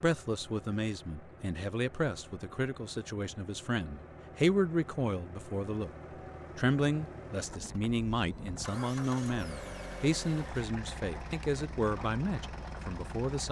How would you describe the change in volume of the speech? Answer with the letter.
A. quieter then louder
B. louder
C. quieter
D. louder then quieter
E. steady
E.